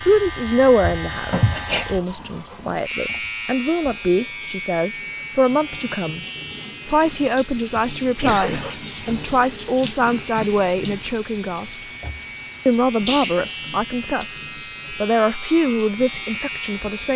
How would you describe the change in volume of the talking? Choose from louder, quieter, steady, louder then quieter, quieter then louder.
steady.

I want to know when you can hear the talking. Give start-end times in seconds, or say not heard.
0.0-6.2, 6.8-11.8, 12.7-17.1.